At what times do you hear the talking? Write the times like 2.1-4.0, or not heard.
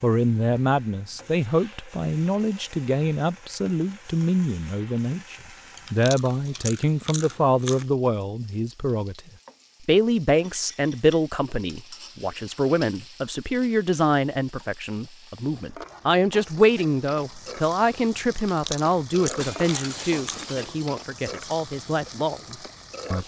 0.0-23.2.